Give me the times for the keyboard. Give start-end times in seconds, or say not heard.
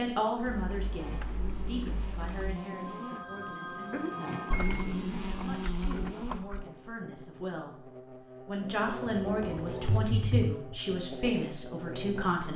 0.5-2.6, 4.5-6.7, 9.1-11.0.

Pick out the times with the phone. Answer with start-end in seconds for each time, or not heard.
2.5-4.5, 9.2-10.0.